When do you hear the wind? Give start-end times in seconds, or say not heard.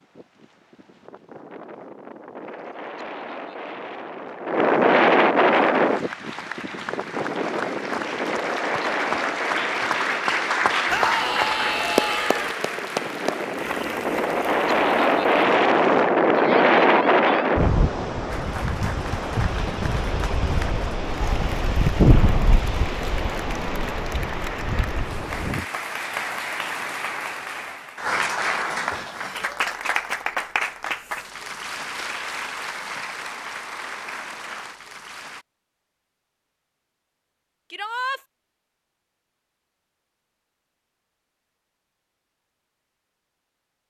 0.0-25.6.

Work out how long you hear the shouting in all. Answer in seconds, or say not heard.
3 s.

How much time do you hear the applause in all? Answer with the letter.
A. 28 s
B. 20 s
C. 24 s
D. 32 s
A.